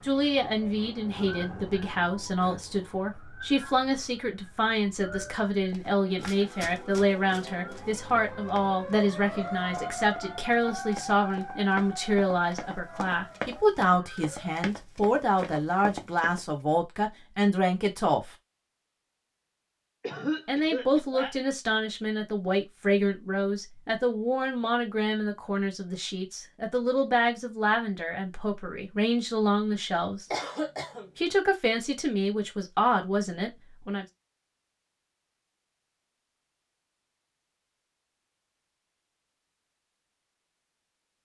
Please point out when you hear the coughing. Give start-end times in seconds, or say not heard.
2.4-3.2, 20.0-21.4, 30.3-31.1.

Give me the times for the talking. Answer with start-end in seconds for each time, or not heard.
0.0-18.3, 20.4-30.2, 31.1-34.0.